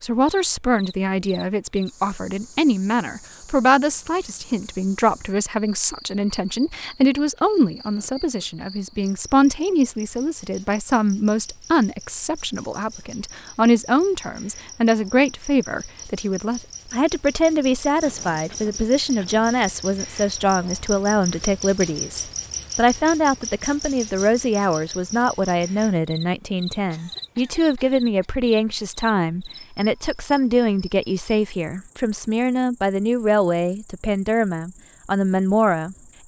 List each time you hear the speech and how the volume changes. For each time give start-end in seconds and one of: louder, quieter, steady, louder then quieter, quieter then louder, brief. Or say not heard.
0.0-36.0 steady.